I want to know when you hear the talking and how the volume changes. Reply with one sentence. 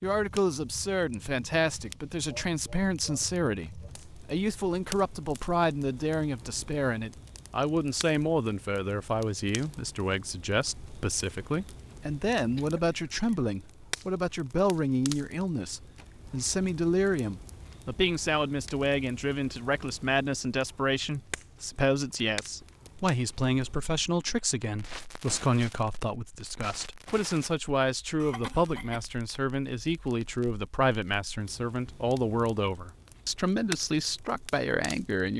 You can hear the talking from 0.0 to 35.3 s, at a steady volume.